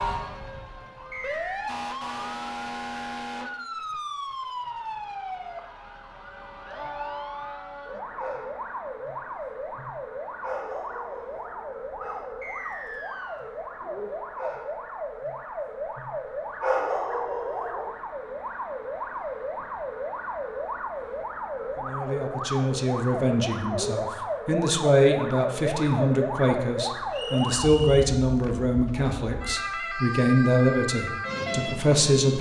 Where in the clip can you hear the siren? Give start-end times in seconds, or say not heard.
0.0-32.3.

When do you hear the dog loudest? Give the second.
17 s.